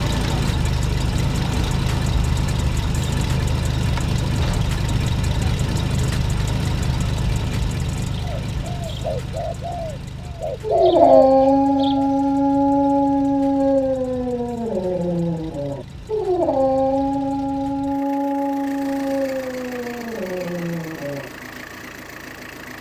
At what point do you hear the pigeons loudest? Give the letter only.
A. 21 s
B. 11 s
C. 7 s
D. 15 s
B.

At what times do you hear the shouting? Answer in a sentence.
You can't hear the shouting here.